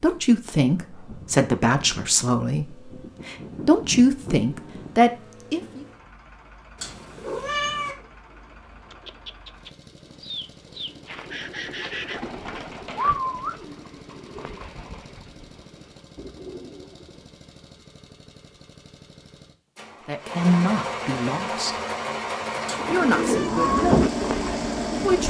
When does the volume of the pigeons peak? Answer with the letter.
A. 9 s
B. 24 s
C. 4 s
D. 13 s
B.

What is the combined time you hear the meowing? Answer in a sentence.
You can hear the meowing for 2 seconds altogether.